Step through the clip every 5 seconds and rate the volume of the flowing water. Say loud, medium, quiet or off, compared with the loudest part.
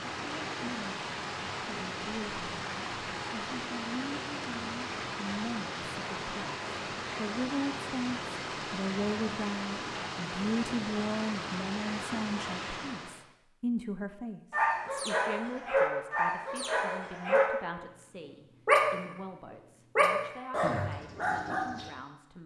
loud, loud, loud, off, off.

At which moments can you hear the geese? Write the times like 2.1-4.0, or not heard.
not heard.